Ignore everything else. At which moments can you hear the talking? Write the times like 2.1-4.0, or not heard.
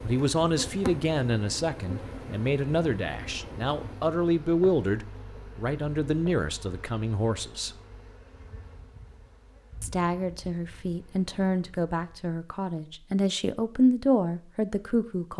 0.0-7.8, 9.8-15.3.